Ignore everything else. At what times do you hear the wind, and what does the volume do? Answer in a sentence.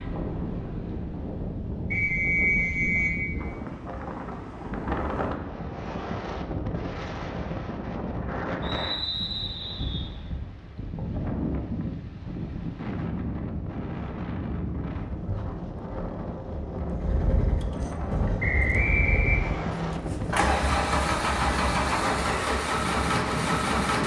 You can hear the wind from 0.0 to 24.0 s, at a steady volume.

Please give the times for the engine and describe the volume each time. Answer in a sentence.
The engine can be heard from 16.9 to 24.0 s, getting louder.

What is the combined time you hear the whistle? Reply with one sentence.
The whistle can be heard for 4 seconds in total.